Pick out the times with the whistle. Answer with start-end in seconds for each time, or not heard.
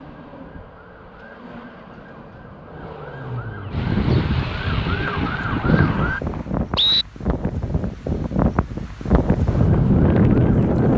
5.0-7.0.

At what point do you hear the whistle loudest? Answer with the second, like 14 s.
7 s.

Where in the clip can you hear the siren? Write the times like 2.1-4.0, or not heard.
0.0-6.2, 9.4-10.8.